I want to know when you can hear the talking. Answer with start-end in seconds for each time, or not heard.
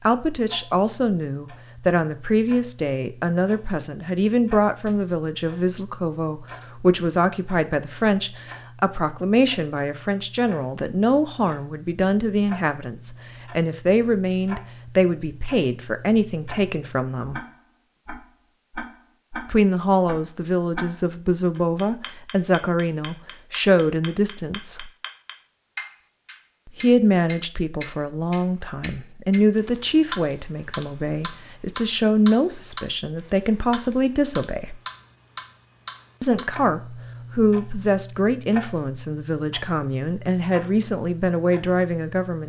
0.0-17.4, 19.4-24.9, 26.8-34.8, 36.2-42.4.